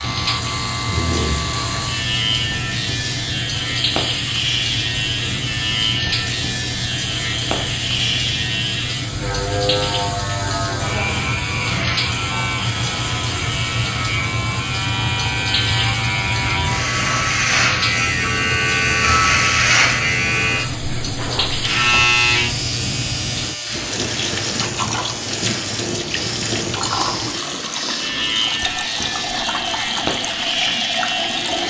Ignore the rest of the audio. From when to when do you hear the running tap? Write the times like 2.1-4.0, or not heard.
0.0-31.6.